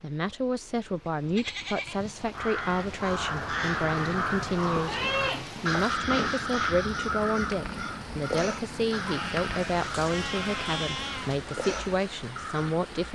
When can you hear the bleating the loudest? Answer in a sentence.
The loudest moment of the bleating is at 5 seconds.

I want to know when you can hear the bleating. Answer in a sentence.
The bleating can be heard from 1.1 to 2.1 s, from 4.8 to 6.8 s and from 9.1 to 11.4 s.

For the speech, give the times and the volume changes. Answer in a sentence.
You can hear the speech from 0.0 to 13.0 s, at a steady volume.